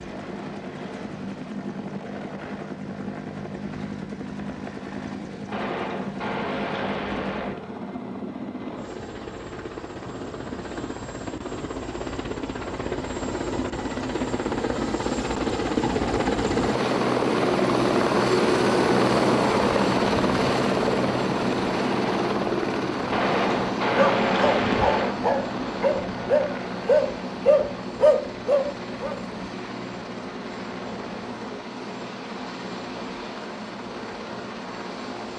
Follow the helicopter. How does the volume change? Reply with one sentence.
The volume of the helicopter goes up, then down.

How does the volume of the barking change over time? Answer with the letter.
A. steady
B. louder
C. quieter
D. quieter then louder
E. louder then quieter
B.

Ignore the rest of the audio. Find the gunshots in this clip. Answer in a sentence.
You can hear the gunshots from 5.5 to 7.5 s and from 23.1 to 25.1 s.